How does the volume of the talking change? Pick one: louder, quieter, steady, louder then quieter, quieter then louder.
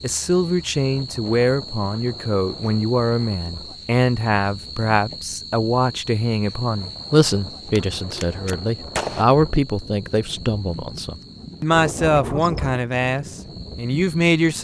steady.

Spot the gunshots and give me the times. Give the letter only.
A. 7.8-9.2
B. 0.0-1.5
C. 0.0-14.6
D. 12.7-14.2
A.